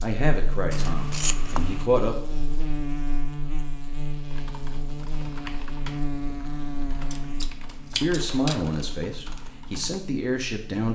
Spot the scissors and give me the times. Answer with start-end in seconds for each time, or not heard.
0.7-1.9, 7.1-8.7.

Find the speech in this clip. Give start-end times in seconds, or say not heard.
0.0-2.1, 8.0-10.8.